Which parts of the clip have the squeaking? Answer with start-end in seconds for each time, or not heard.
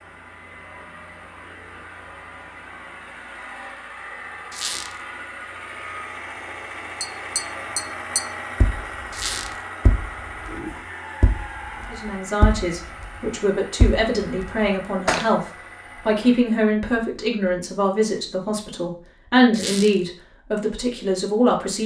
4.5-5.0, 9.1-9.6, 19.5-20.0.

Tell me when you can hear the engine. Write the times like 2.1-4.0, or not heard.
0.0-16.4.